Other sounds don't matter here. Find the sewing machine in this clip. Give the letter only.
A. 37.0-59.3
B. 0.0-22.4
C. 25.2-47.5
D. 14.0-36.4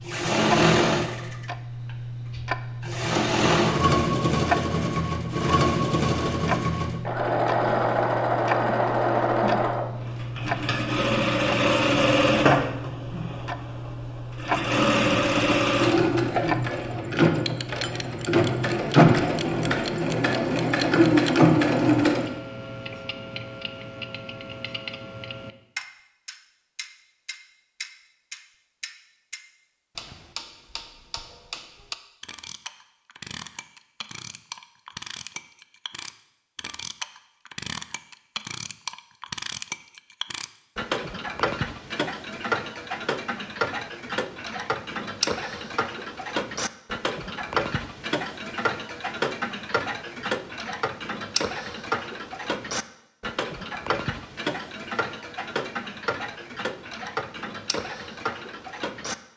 B.